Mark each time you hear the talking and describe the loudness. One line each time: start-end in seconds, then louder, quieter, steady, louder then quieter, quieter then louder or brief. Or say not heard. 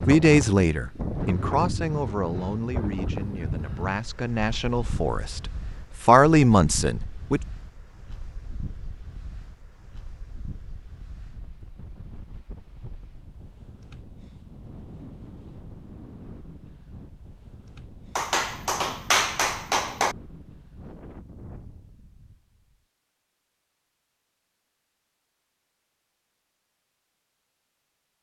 0.1-7.4 quieter then louder.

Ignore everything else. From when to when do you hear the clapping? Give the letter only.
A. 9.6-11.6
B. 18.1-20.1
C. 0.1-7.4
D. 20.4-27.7
B.